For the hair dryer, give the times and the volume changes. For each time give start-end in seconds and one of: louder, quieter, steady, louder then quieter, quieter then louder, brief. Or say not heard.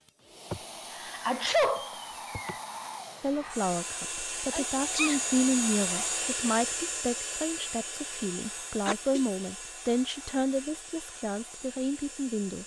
0.0-12.6 louder then quieter.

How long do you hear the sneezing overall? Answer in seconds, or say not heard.
3 s.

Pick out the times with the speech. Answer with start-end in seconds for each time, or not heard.
3.2-12.6.